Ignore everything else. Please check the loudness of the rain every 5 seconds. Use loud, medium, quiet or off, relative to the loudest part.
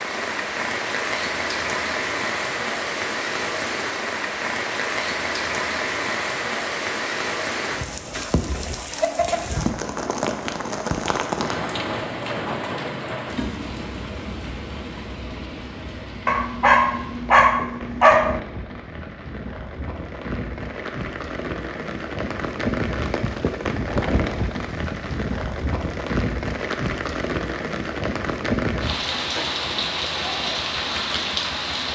loud, loud, loud, medium, loud, loud, loud.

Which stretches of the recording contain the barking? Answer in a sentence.
You can hear the barking from 16.2 to 18.4 s.